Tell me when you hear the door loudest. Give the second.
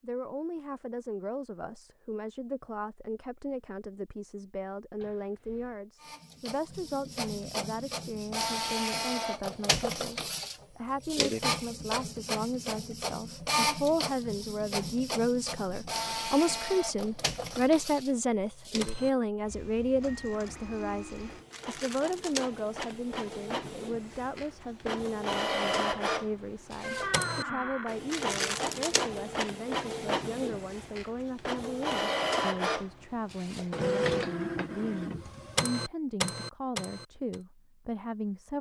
27 s.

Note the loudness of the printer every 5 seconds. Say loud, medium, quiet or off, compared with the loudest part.
off, loud, loud, medium, medium, loud, loud, loud.